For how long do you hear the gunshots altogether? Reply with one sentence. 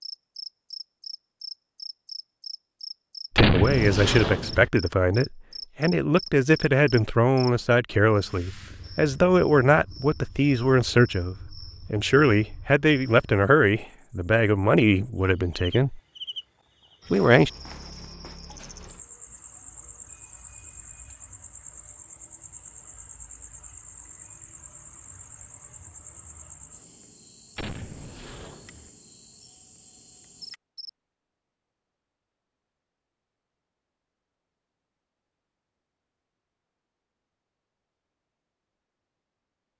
You can hear the gunshots for 3 seconds altogether.